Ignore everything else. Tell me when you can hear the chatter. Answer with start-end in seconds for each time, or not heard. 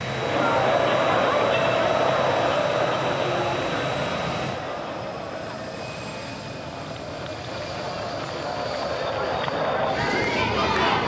0.0-11.0.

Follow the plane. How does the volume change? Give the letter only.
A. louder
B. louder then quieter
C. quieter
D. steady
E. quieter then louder
C.